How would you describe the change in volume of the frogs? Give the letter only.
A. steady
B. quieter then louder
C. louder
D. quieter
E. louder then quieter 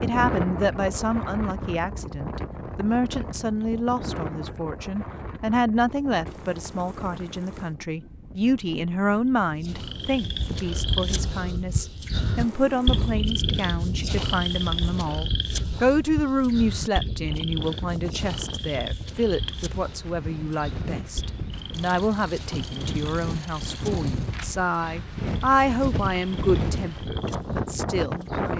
D.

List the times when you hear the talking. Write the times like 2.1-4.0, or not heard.
0.0-28.5.